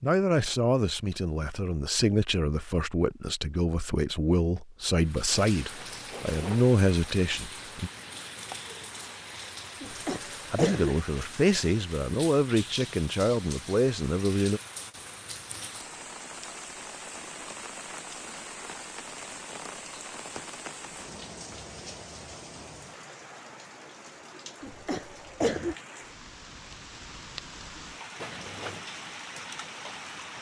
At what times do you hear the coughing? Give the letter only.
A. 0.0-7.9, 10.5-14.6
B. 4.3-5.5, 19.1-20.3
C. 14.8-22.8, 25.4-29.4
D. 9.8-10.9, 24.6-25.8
D.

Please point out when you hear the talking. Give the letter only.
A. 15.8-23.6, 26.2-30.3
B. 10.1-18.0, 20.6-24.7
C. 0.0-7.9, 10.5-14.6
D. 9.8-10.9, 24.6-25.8
C.